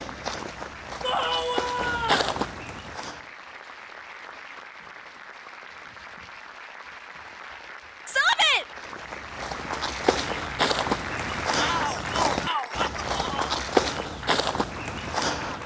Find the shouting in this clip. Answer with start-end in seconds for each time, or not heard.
1.0-2.4, 8.1-8.7, 11.6-13.5.